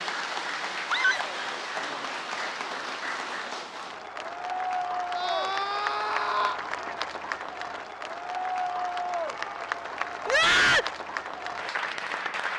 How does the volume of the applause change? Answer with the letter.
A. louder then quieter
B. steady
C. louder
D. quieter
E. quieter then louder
B.